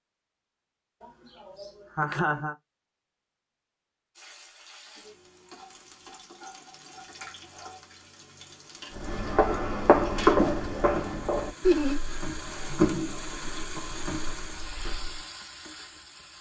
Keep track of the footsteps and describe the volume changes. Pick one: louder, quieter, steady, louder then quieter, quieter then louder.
quieter.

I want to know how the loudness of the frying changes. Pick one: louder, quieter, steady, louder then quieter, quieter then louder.
louder then quieter.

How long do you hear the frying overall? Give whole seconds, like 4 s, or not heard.
12 s.